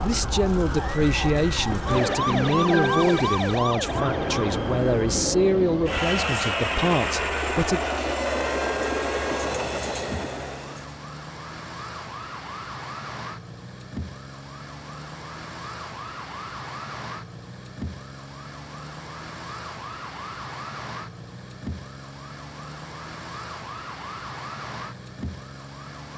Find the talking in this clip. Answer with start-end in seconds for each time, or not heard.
0.0-7.8.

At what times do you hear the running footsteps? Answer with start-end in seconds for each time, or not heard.
not heard.